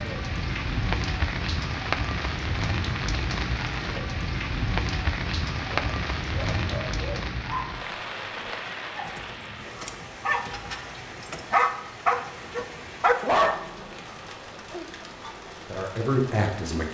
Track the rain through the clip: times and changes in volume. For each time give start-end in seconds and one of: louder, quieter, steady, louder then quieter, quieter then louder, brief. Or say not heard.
0.0-16.8 quieter.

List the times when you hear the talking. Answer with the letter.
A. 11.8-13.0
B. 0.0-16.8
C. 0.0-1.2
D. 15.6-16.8
D.